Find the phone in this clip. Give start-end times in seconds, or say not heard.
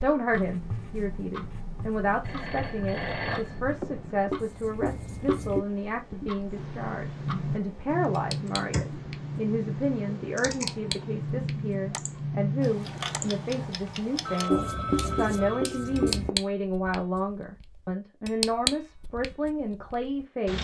2.2-4.3, 14.2-16.2.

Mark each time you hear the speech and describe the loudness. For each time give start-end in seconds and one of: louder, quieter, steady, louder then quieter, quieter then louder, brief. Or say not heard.
0.0-20.5 steady.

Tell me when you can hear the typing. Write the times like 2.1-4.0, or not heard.
6.5-13.8.